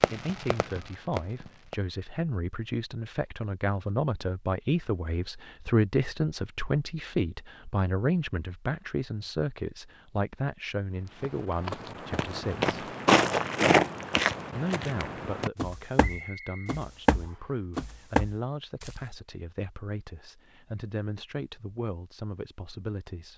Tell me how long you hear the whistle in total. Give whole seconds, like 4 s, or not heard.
2 s.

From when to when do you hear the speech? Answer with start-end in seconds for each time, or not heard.
0.0-12.8, 14.6-23.3.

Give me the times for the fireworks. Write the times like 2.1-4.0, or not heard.
0.0-1.8.